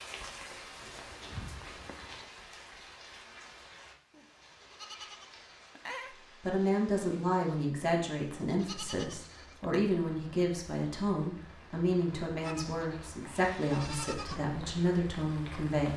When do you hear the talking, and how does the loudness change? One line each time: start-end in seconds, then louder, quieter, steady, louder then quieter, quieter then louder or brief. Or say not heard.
6.4-15.9 steady.